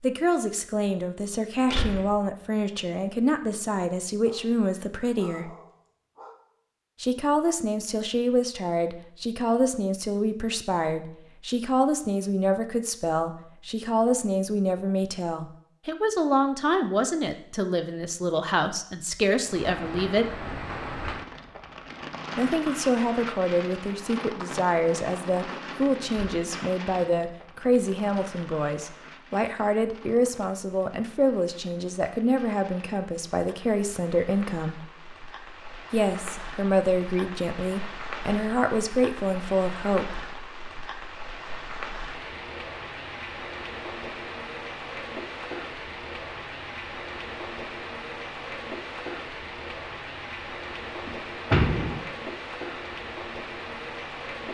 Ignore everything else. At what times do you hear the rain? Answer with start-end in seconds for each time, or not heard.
19.4-54.4.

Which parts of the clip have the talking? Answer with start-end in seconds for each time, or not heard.
0.0-5.5, 7.0-20.2, 22.4-34.8, 35.9-40.2.